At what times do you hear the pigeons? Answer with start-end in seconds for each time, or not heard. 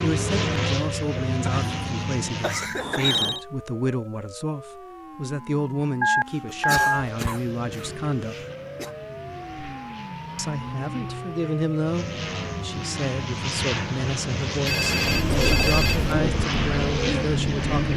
15.1-17.9.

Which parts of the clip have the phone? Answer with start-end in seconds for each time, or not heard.
2.8-3.4, 6.0-7.0, 14.7-16.1.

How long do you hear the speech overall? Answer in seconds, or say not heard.
16 s.